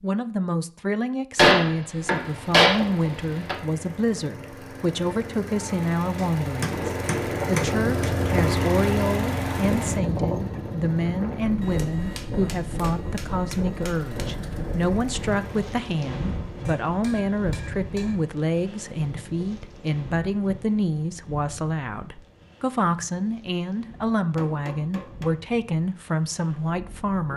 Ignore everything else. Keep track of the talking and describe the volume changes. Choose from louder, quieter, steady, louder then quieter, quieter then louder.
steady.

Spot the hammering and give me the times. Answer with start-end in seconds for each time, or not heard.
1.4-3.5, 6.2-8.1, 11.6-14.2, 16.6-18.1, 24.4-25.4.